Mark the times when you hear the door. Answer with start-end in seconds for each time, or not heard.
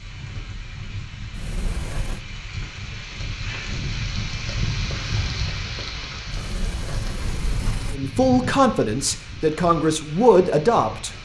1.3-2.2, 6.3-8.0.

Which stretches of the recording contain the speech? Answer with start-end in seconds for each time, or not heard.
7.9-11.1.